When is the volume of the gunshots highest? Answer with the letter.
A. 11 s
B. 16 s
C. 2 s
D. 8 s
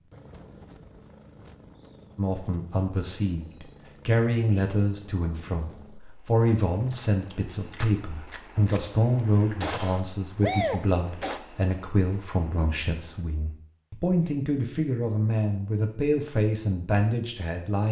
A.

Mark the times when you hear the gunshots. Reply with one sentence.
The gunshots can be heard from 6.9 to 8.8 s and from 9.6 to 11.4 s.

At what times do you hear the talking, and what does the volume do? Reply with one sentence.
You can hear the talking from 2.1 to 17.8 s, at a steady volume.